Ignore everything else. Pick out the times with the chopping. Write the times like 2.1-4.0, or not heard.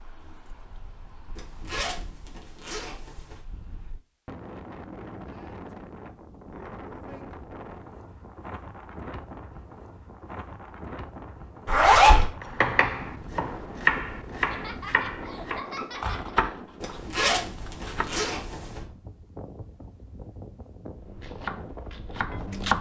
12.4-18.1, 20.9-22.7.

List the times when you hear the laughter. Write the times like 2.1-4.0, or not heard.
14.5-16.4.